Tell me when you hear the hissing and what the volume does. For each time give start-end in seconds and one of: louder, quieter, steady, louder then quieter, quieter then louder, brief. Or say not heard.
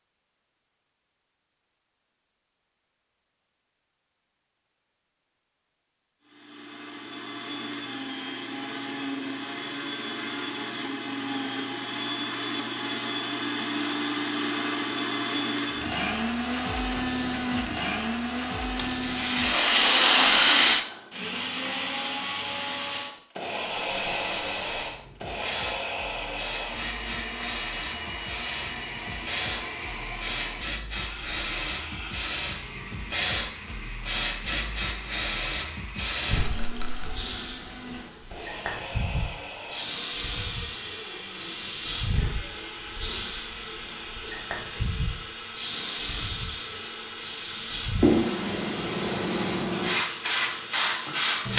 23.6-51.5 louder.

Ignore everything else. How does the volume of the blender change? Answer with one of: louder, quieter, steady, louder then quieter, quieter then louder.
quieter.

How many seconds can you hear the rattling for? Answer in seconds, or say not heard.
3 s.